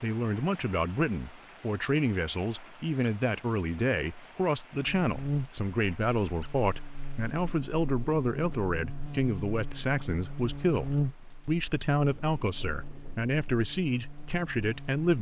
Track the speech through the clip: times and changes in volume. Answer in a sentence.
The speech can be heard from 0.0 to 15.1 s, at a steady volume.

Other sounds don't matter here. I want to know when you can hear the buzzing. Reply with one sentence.
You can hear the buzzing from 4.8 to 15.1 s.